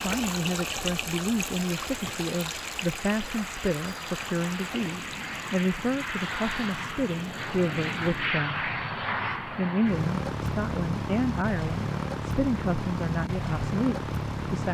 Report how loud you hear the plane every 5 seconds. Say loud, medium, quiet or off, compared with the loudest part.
medium, loud, loud.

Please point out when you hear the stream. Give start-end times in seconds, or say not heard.
0.0-8.3.